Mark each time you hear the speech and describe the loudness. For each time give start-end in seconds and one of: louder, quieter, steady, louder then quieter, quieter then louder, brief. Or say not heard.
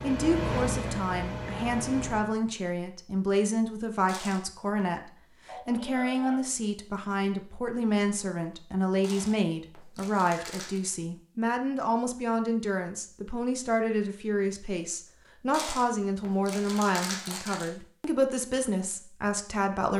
0.0-19.9 steady.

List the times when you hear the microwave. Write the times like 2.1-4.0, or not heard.
0.0-2.4.